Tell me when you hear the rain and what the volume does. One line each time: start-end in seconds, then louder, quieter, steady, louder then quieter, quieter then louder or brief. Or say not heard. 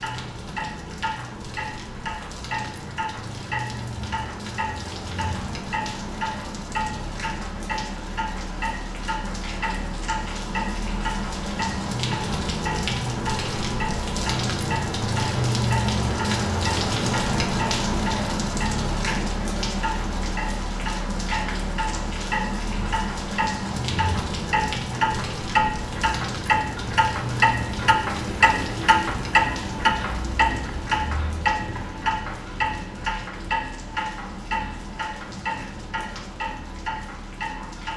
0.0-37.9 louder then quieter.